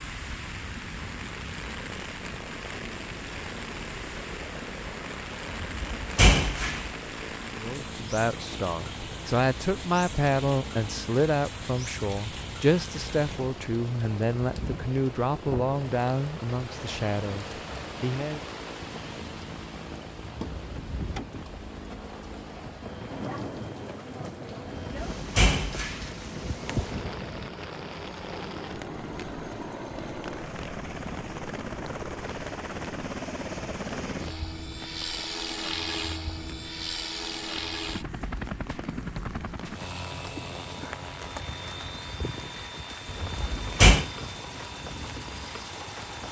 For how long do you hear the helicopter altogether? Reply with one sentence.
The helicopter can be heard for 46 seconds in total.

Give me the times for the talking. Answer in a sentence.
You can hear the talking from 7.5 to 18.4 s.